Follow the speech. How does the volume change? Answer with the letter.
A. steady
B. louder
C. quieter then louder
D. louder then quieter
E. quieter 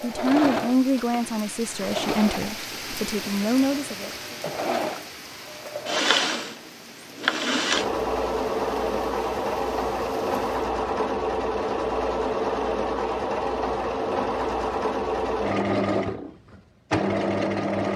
C.